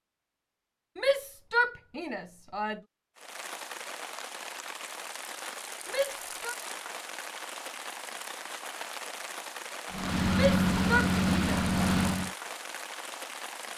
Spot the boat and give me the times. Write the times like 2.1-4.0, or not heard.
9.9-12.3.